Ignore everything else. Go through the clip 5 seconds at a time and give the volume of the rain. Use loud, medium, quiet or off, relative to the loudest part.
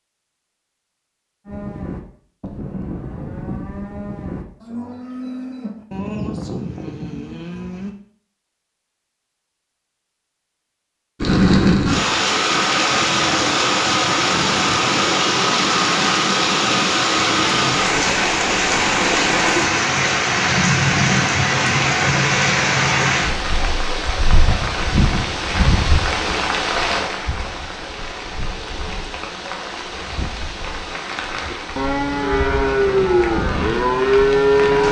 off, off, loud, loud, loud, medium, quiet.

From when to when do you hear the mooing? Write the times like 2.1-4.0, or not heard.
1.4-7.9, 31.5-34.8.